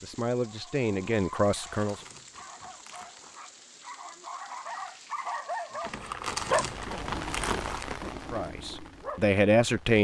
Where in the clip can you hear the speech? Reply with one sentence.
The speech can be heard from 0.0 to 2.0 s and from 8.3 to 9.9 s.